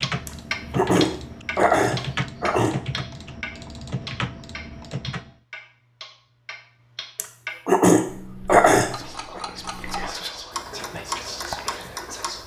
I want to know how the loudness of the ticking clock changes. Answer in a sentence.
The loudness of the ticking clock goes down, then up.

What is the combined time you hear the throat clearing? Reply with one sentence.
You can hear the throat clearing for 5 seconds altogether.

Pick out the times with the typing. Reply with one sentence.
The typing can be heard from 0.0 to 5.3 s.